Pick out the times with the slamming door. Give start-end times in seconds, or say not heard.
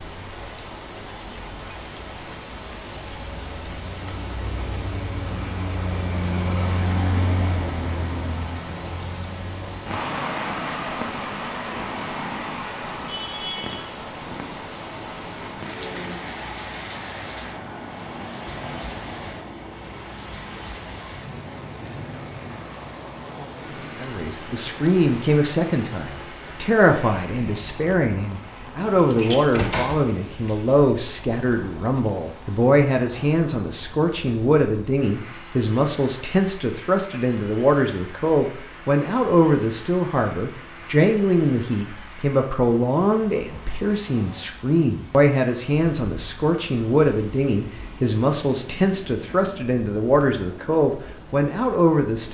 29.1-30.1.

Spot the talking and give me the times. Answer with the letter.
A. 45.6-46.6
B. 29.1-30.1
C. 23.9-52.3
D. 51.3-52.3
C.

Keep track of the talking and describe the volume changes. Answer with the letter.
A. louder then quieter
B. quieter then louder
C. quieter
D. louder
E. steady
E.